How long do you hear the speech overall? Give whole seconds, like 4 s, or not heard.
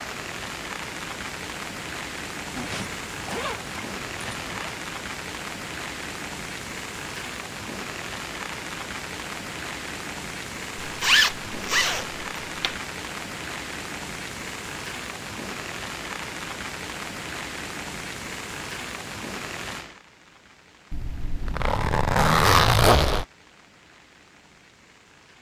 not heard.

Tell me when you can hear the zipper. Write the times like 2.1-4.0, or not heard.
2.5-4.8, 10.8-12.8, 20.9-23.2.